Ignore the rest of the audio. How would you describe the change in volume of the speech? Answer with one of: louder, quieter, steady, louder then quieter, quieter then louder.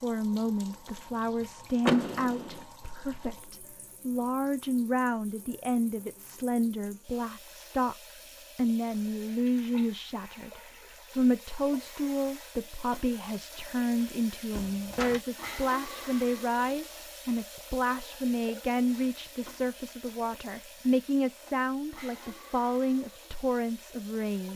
steady.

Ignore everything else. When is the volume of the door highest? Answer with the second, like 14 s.
2 s.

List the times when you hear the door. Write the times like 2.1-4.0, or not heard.
1.9-2.6, 14.5-15.2.